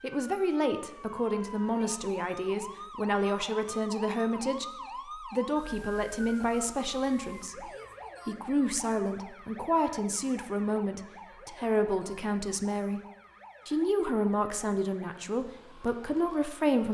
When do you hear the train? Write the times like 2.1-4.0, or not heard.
not heard.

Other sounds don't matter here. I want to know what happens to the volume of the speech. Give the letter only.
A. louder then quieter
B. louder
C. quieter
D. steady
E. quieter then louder
D.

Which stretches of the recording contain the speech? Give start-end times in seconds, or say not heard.
0.0-13.0, 13.7-16.8.